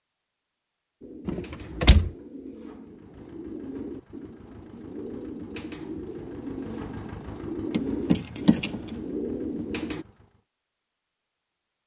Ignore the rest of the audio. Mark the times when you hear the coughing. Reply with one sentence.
You can't hear the coughing here.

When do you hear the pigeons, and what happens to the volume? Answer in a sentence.
You can hear the pigeons from 1.0 to 10.1 s, getting louder.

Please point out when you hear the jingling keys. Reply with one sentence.
You can hear the jingling keys from 1.2 to 2.1 s and from 7.7 to 8.9 s.